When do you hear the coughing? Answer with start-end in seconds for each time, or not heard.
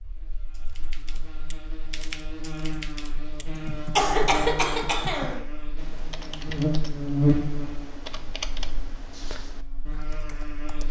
4.0-5.5.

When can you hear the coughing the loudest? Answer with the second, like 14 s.
4 s.